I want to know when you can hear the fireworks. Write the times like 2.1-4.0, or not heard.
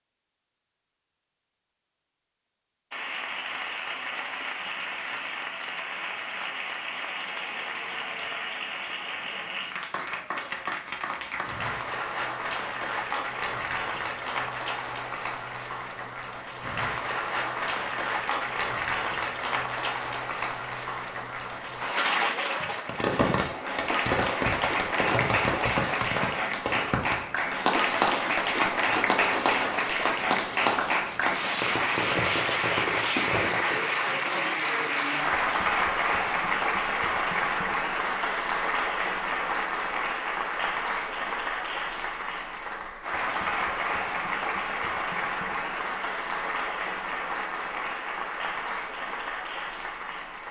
22.9-33.8.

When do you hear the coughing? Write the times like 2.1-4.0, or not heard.
not heard.